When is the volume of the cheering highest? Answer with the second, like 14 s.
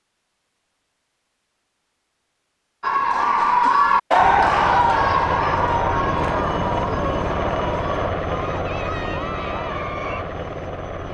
4 s.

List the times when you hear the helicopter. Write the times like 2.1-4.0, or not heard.
4.1-11.1.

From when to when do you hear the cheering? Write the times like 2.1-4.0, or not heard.
2.8-10.2.